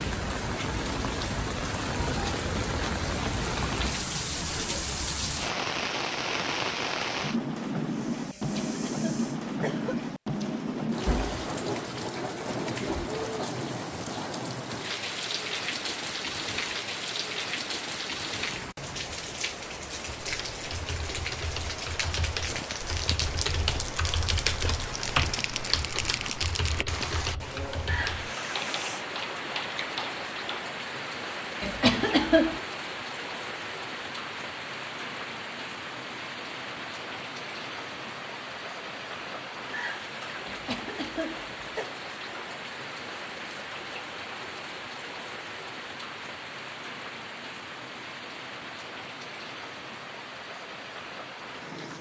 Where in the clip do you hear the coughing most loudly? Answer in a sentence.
The volume of the coughing peaks at 32 seconds.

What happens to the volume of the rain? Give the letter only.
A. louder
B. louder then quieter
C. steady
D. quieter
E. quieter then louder
D.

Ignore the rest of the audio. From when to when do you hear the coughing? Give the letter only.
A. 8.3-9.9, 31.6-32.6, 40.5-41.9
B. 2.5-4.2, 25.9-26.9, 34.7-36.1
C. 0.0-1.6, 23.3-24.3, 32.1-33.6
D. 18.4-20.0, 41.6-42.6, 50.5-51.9
A.